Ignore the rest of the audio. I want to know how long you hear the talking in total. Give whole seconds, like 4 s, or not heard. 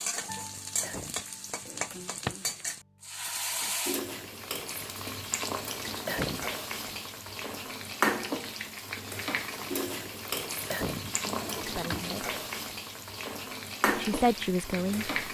2 s.